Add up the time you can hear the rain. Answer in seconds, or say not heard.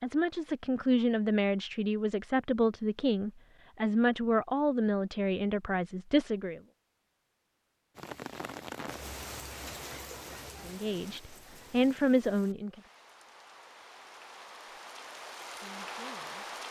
9 s.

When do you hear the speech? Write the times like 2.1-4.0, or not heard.
0.0-6.6, 10.7-12.8, 15.4-16.6.